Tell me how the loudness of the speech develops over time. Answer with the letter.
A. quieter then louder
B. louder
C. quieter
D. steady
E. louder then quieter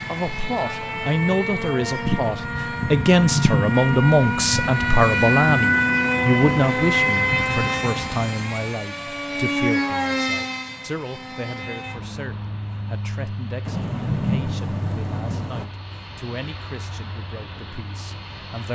C.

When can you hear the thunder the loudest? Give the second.
14 s.